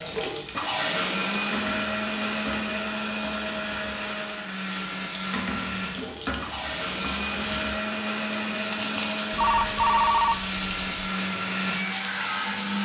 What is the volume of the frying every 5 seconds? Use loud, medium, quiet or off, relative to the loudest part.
medium, loud, loud.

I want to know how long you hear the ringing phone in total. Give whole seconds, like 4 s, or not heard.
2 s.